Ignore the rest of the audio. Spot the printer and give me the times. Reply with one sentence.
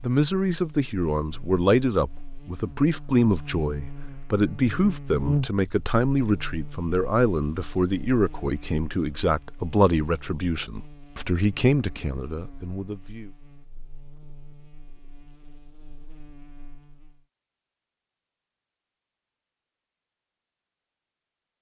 The printer can't be heard in this clip.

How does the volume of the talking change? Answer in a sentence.
The loudness of the talking stays about the same.